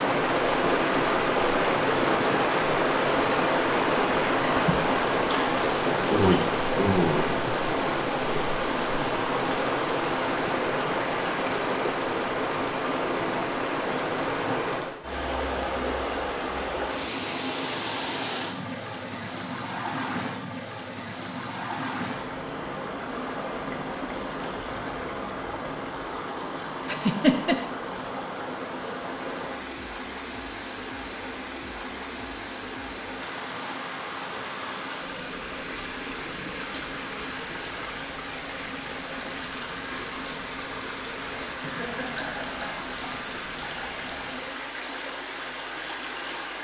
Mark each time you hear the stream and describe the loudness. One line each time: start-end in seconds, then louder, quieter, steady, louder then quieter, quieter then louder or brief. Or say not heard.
0.0-46.6 quieter.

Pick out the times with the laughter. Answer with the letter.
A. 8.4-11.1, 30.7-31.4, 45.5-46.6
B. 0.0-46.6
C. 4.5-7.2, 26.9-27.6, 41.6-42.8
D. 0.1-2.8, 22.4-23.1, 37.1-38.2
C.